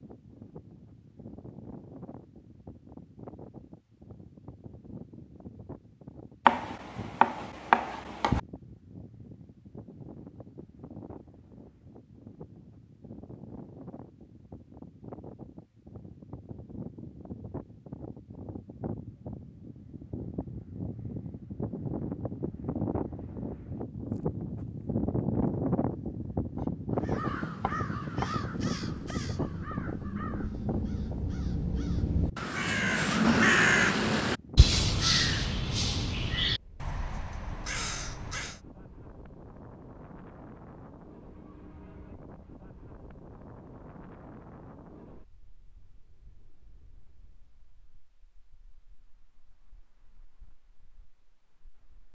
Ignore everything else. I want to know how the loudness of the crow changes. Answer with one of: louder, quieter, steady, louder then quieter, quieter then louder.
louder then quieter.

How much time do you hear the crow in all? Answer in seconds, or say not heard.
12 s.